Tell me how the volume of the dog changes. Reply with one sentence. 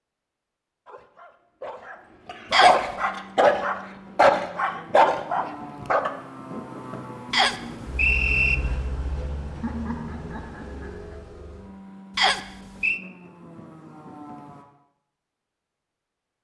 The loudness of the dog goes up.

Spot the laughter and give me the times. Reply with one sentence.
You can hear the laughter from 9.6 to 11.2 s.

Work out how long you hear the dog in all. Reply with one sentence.
You can hear the dog for 5 seconds altogether.